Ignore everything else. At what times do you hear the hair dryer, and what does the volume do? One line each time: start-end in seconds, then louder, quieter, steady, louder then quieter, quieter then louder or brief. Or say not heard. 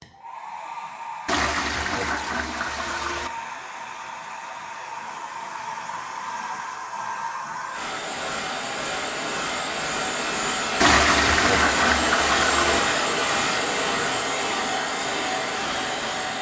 0.0-16.3 louder.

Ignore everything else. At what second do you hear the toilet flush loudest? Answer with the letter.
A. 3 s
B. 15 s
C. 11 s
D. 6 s
C.